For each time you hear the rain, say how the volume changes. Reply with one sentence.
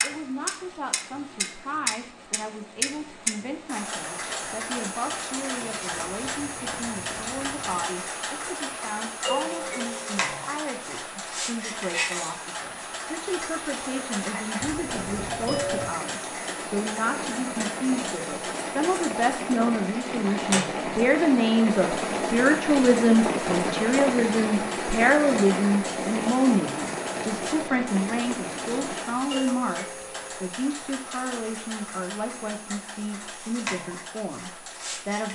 The rain can be heard from 0.0 to 29.2 s, getting louder.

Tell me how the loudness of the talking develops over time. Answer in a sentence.
The loudness of the talking goes up, then down.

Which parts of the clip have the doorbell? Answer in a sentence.
You can hear the doorbell from 9.2 to 10.3 s, from 14.6 to 15.8 s and from 29.3 to 30.4 s.